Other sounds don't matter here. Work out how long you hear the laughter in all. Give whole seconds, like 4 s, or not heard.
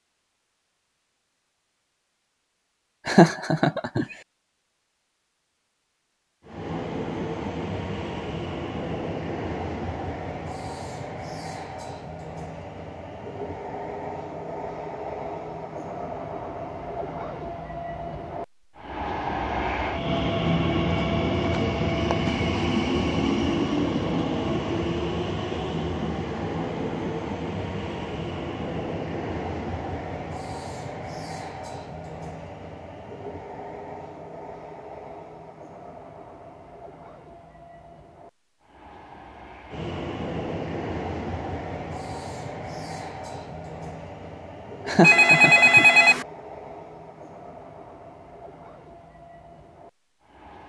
2 s.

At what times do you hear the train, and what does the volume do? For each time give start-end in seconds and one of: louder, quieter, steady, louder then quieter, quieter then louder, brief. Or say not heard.
6.5-50.6 louder then quieter.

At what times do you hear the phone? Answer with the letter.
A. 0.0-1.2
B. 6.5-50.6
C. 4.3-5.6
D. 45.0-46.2
D.